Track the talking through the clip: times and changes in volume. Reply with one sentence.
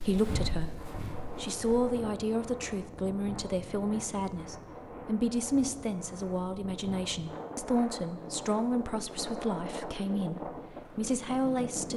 The talking can be heard from 0.0 to 11.9 s, at a steady volume.